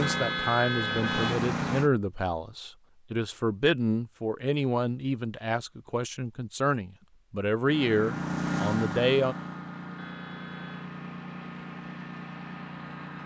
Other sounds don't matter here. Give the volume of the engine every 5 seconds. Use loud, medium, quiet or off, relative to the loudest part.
loud, loud, medium.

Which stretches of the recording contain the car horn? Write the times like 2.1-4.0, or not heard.
0.0-1.5, 9.9-10.9.